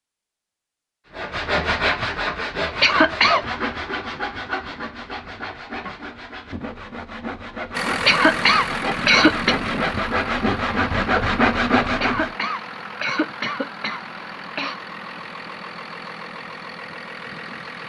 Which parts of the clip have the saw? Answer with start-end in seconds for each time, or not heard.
1.1-12.3.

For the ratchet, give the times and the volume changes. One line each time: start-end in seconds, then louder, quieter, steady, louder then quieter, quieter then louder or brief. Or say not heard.
not heard.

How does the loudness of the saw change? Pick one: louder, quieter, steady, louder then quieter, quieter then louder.
quieter then louder.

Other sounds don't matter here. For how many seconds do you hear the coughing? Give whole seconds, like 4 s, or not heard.
5 s.